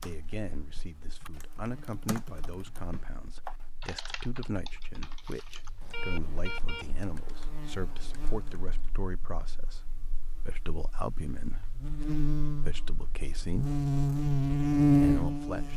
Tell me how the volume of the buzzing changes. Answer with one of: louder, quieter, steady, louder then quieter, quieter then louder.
louder.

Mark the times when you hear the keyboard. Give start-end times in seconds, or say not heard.
0.0-9.1.